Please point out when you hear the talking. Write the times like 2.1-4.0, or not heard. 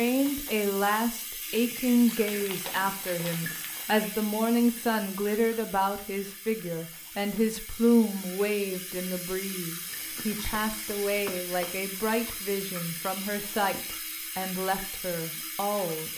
0.0-16.1.